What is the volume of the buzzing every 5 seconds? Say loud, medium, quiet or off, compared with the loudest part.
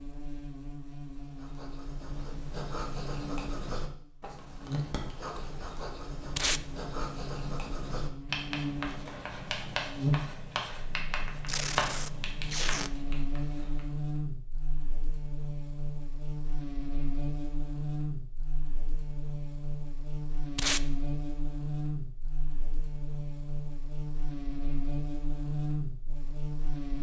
medium, medium, loud, loud, loud, loud.